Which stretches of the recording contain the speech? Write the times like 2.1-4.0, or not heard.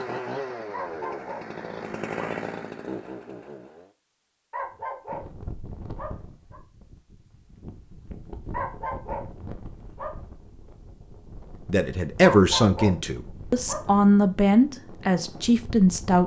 11.7-16.2.